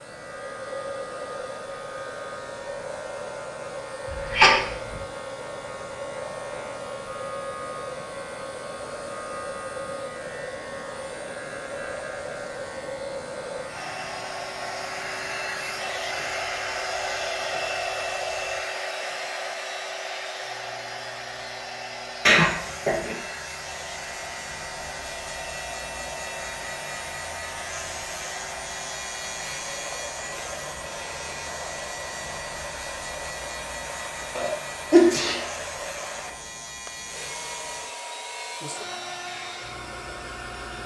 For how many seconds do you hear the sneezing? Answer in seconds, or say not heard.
3 s.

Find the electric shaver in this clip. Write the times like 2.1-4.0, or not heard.
0.0-40.8.